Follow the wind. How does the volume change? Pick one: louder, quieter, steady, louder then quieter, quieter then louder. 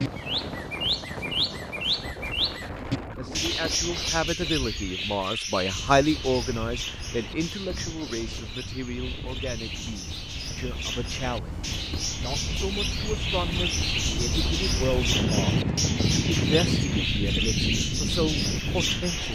quieter then louder.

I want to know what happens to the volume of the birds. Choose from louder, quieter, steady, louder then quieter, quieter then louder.
quieter then louder.